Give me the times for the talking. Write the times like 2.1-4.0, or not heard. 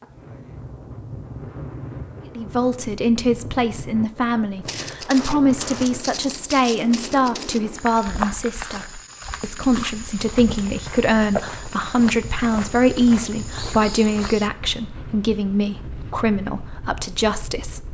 2.4-17.8.